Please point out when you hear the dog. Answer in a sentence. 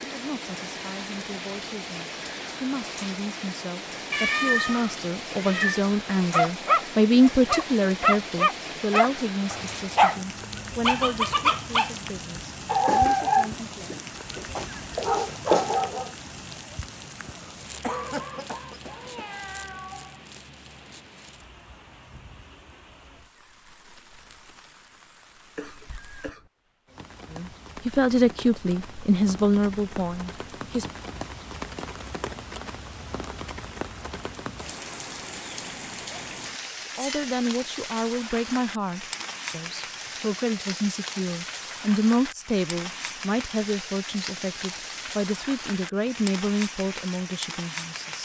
The dog can be heard from 6.3 to 16.1 s.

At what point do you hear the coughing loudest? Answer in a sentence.
The loudest moment of the coughing is at 18 seconds.